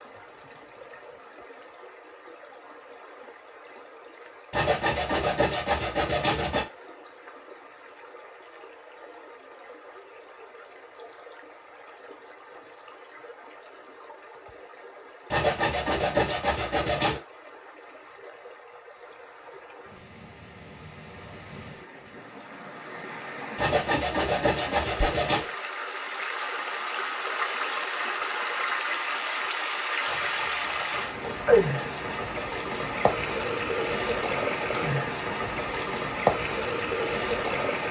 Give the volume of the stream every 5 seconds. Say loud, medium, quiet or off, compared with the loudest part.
quiet, quiet, quiet, quiet, quiet, loud, loud, loud.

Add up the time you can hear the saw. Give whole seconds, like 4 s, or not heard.
9 s.